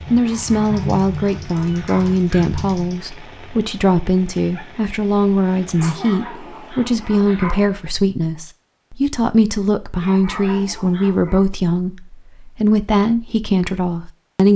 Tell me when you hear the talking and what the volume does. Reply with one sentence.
You can hear the talking from 0.1 to 14.5 s, at a steady volume.